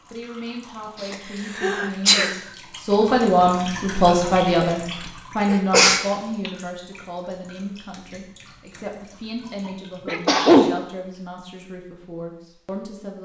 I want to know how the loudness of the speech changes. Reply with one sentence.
The loudness of the speech goes up, then down.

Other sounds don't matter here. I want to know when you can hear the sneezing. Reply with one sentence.
You can hear the sneezing from 1.0 to 2.4 s, from 5.0 to 6.5 s and from 10.1 to 10.7 s.